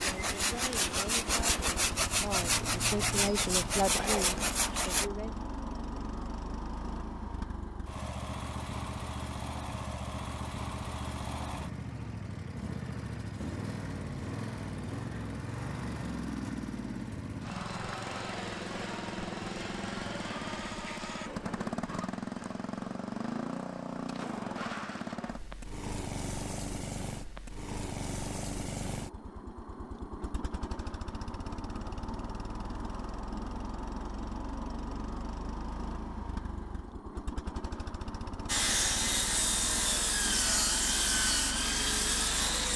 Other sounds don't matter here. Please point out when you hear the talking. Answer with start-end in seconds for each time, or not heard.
0.1-5.3.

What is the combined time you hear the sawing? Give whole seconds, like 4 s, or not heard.
9 s.